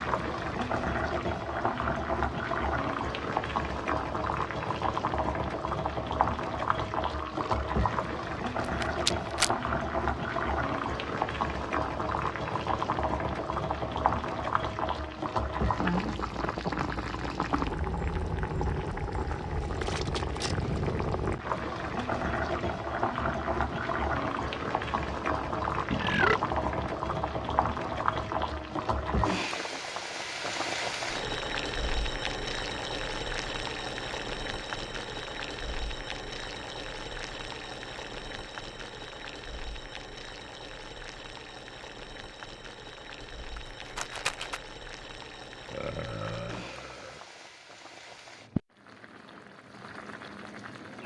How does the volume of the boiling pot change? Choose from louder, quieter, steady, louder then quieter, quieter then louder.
quieter.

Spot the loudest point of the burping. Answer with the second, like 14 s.
26 s.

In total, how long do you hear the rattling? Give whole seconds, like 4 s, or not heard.
2 s.